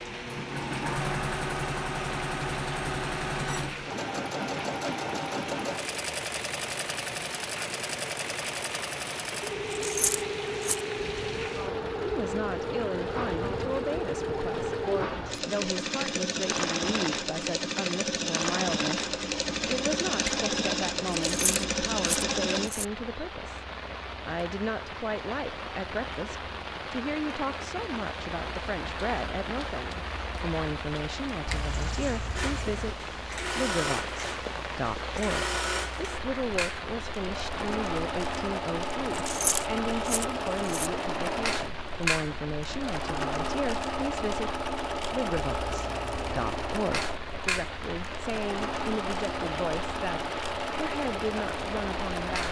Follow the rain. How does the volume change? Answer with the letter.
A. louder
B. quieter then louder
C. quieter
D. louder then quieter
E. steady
E.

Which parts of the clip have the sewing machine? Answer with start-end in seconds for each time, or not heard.
0.0-22.7, 31.6-52.4.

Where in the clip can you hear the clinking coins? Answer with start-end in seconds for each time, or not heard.
9.7-10.8, 21.2-22.9, 39.1-40.9.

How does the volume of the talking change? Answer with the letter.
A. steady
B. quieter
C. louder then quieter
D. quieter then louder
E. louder
A.